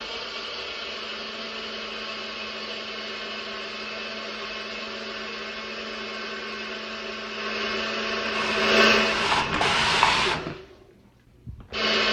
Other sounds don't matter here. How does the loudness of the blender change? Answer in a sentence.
The loudness of the blender goes up, then down.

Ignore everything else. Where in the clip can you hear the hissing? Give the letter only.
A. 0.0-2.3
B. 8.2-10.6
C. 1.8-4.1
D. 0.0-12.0
B.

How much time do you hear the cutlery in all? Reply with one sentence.
The cutlery can't be heard in this clip.